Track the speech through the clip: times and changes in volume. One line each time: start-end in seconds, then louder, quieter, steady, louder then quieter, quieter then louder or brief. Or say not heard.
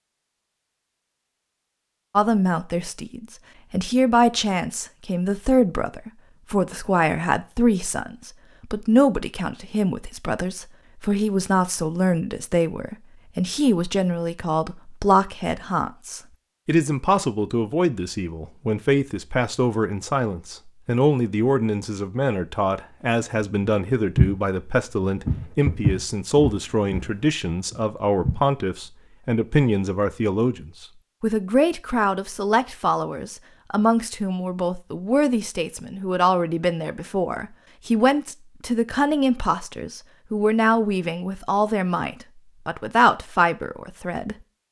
2.1-44.6 steady.